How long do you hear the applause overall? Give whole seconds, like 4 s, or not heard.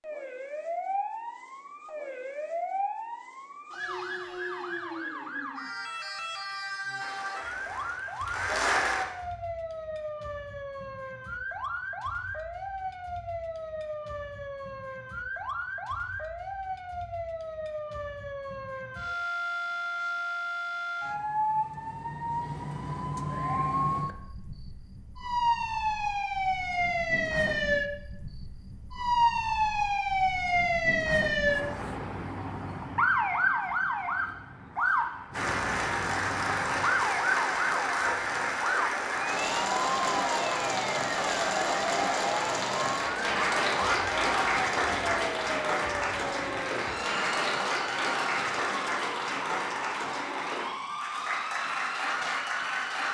20 s.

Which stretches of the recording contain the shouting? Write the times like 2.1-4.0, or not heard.
not heard.